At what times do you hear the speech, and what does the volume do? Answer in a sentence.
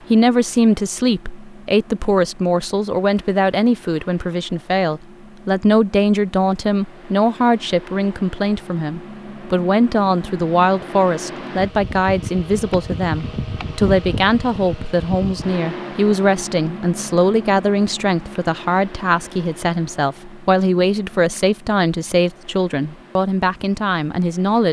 You can hear the speech from 0.1 to 24.6 s, at a steady volume.